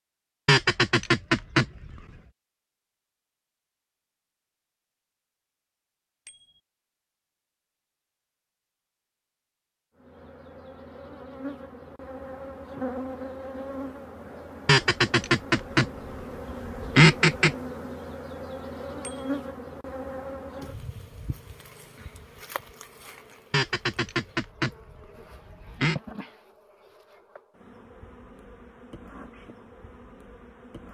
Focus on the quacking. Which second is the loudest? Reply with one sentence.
The loudest moment of the quacking is at 17 seconds.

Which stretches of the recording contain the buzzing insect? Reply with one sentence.
The buzzing insect can be heard from 9.9 to 30.8 s.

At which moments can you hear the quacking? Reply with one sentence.
The quacking can be heard from 0.5 to 1.9 s, from 14.7 to 15.8 s, from 16.6 to 17.6 s and from 23.5 to 25.9 s.